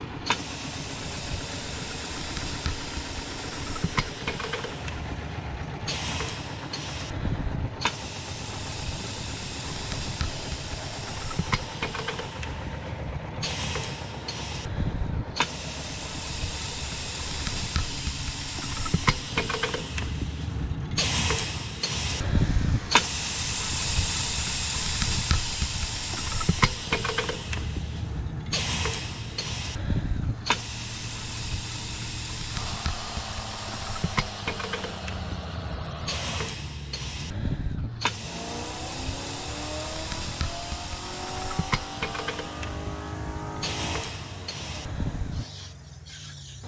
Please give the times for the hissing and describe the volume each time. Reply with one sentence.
The hissing can be heard from 0.0 to 46.6 s, getting louder then quieter.